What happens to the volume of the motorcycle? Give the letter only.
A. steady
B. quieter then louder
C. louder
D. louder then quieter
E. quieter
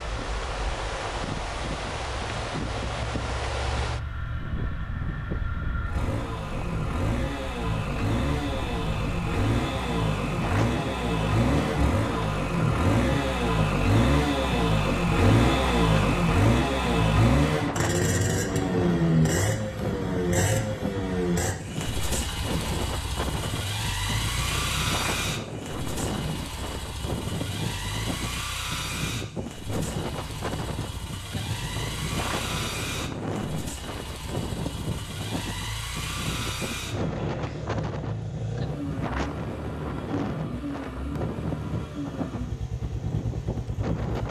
D.